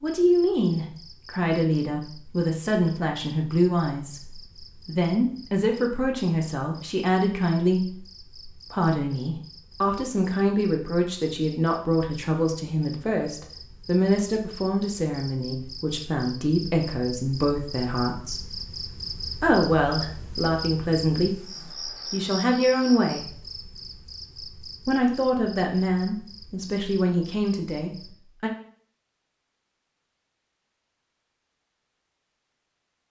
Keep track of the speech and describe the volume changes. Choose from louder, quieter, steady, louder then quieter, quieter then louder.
steady.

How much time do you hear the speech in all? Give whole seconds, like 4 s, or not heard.
26 s.